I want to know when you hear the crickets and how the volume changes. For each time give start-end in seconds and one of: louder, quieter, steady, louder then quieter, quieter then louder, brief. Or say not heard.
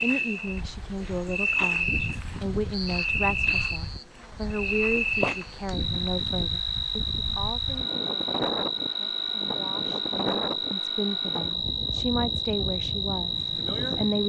0.0-14.2 steady.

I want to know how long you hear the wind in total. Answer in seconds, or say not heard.
14 s.